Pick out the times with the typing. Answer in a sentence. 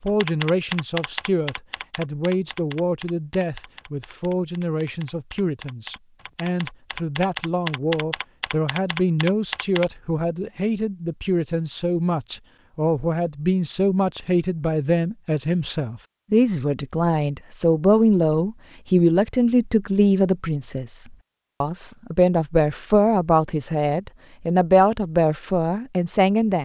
You can hear the typing from 0.1 to 9.8 s.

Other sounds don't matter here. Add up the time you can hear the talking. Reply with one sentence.
The talking can be heard for 26 seconds in total.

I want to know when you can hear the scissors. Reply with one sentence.
You can't hear the scissors here.